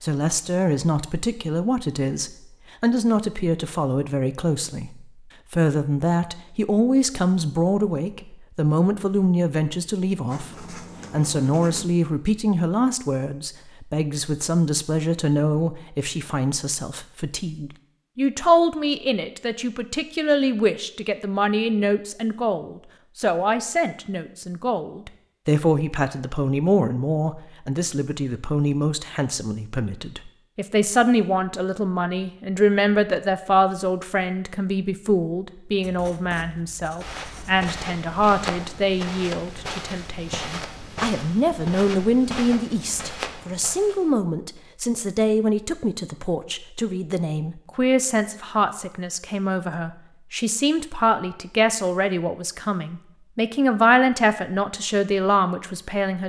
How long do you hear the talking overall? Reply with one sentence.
The talking can be heard for 56 seconds in total.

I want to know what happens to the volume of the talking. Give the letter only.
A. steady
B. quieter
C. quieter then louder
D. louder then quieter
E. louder
A.